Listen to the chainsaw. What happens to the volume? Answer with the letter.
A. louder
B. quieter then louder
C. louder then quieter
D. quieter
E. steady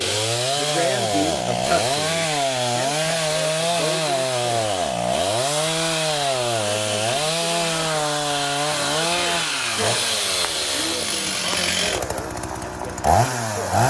E.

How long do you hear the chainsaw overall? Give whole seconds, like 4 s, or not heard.
14 s.